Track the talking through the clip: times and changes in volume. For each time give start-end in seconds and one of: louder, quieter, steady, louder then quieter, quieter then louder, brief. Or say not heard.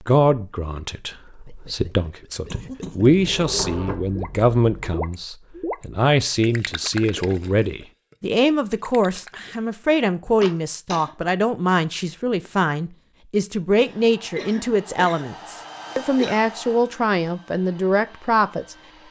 0.0-19.0 steady.